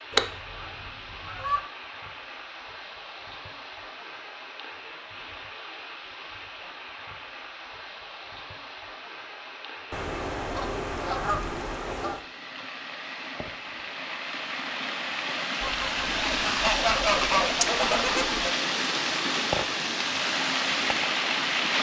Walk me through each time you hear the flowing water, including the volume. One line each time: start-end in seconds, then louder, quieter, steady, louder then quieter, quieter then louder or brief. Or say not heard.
0.0-21.7 louder.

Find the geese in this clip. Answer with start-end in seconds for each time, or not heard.
0.1-1.6, 9.9-12.2, 15.6-18.5.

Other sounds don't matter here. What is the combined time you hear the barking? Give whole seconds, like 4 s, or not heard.
not heard.